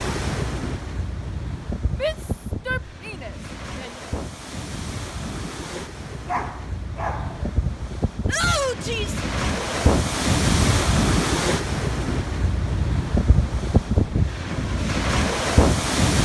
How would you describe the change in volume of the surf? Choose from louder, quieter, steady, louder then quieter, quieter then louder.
louder.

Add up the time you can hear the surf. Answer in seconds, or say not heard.
16 s.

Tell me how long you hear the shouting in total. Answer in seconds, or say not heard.
3 s.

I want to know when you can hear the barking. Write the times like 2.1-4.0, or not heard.
6.2-7.6.